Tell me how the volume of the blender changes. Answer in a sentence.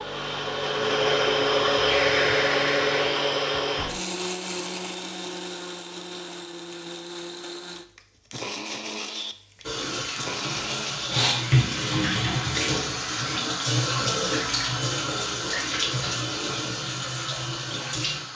The volume of the blender goes down.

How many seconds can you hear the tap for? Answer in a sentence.
You can hear the tap for 9 seconds altogether.